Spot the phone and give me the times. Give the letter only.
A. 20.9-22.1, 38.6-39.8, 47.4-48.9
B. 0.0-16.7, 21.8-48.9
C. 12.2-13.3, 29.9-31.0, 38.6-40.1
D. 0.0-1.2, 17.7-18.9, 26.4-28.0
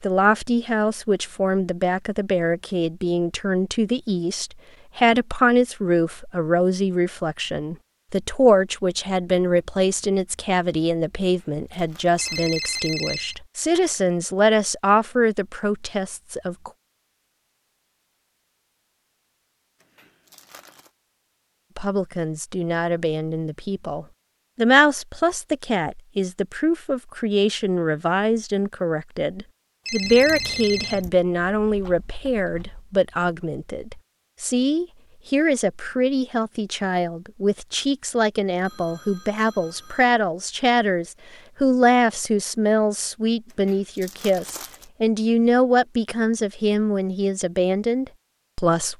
C.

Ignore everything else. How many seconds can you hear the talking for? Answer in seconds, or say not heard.
44 s.